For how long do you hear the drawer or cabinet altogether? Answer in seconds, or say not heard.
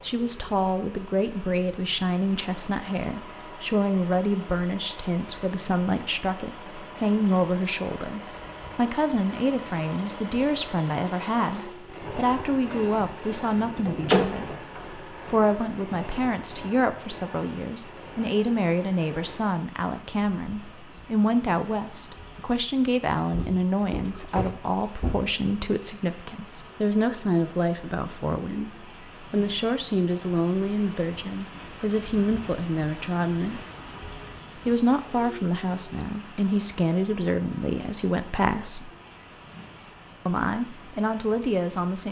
5 s.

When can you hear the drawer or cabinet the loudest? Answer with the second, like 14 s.
14 s.